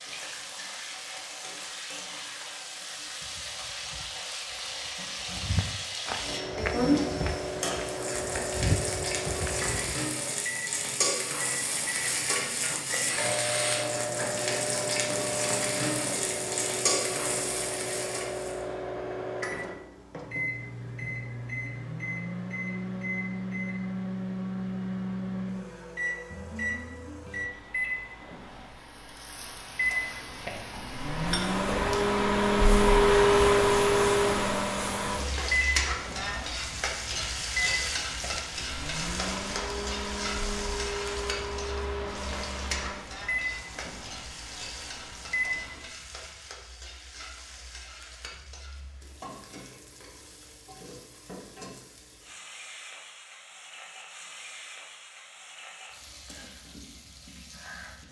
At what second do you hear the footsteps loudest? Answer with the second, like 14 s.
9 s.